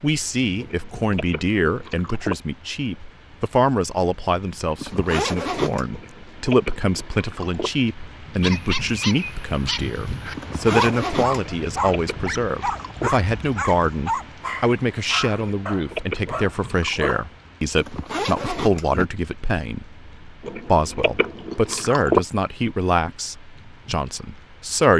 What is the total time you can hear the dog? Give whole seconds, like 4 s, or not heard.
9 s.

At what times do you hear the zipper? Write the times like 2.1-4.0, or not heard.
4.8-5.8, 10.3-11.4, 17.8-19.1.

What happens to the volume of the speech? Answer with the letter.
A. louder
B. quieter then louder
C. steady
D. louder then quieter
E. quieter
C.